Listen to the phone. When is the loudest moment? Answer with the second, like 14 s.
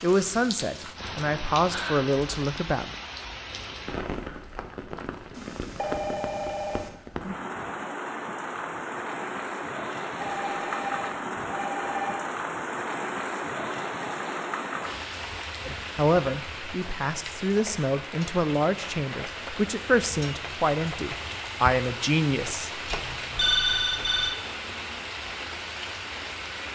24 s.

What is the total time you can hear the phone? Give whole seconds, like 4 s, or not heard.
5 s.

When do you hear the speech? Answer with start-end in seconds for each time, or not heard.
0.0-2.9, 15.7-22.8.